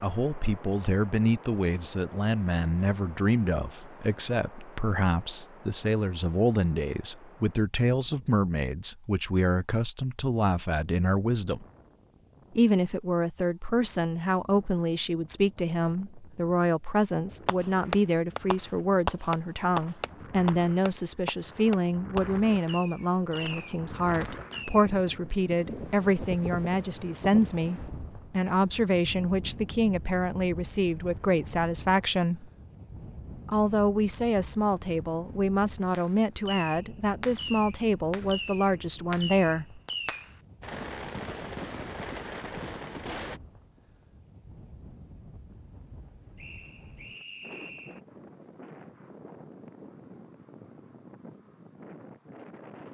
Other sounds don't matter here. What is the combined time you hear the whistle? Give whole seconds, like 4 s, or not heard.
2 s.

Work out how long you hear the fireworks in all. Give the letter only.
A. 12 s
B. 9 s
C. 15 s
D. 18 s
C.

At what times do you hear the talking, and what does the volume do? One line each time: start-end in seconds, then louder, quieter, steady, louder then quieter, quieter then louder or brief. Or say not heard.
0.0-11.7 steady
12.6-32.5 steady
33.5-39.8 steady.